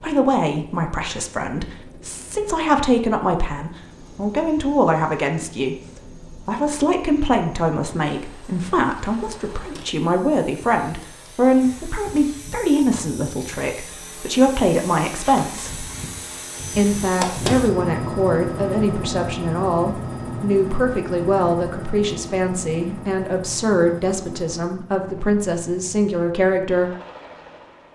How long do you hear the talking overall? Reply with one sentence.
The talking can be heard for 26 seconds in total.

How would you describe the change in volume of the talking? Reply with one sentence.
The volume of the talking stays about the same.